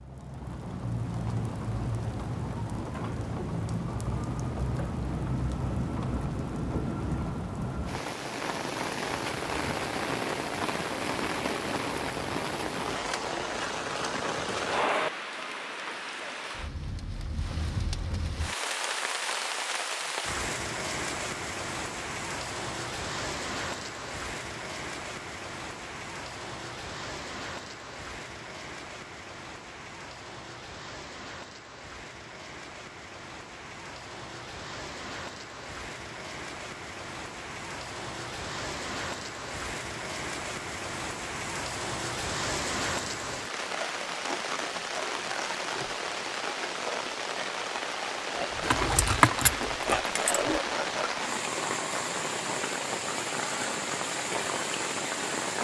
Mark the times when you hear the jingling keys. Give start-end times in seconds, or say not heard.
48.6-50.6.